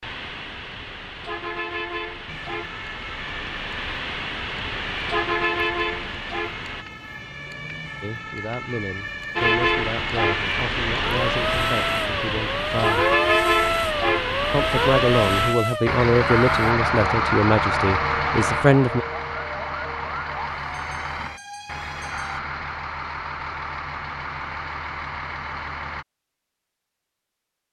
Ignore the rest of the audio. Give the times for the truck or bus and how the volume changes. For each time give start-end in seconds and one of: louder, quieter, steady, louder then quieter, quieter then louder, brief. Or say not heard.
0.0-6.8 louder
9.3-26.1 quieter.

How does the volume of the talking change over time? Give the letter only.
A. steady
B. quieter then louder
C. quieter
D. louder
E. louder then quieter
D.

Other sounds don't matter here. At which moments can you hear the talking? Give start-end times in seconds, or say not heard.
8.0-13.1, 14.5-19.1.